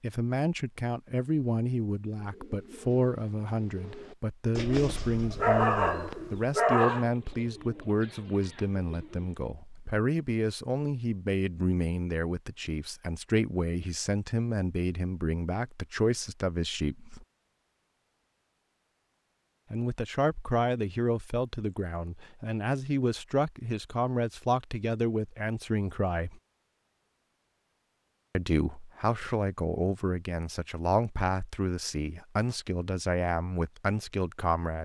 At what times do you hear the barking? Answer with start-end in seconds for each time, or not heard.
5.3-7.0.